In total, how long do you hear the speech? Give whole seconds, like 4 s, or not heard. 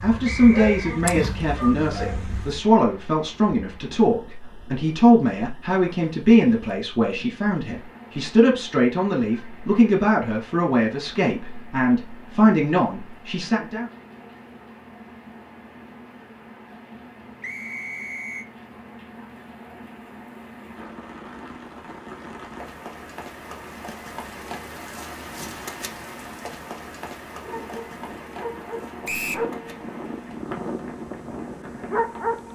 14 s.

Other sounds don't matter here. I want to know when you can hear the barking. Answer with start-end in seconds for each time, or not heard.
0.0-2.6, 27.3-32.5.